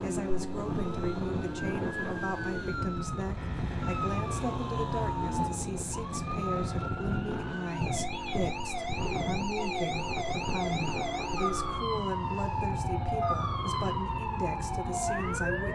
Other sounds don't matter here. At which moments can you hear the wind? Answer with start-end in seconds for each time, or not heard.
0.0-15.7.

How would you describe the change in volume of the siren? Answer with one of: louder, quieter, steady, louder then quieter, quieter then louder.
louder.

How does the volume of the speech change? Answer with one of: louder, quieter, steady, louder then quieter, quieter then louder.
steady.